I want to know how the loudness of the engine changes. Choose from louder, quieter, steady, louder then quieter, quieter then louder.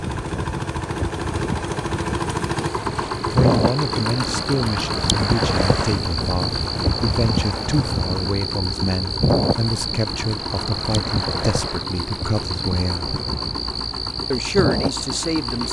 quieter.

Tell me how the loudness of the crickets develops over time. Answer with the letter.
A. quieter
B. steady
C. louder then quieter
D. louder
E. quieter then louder
B.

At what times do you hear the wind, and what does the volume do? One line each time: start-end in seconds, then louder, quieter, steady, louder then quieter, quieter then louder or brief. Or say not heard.
0.0-15.6 louder then quieter.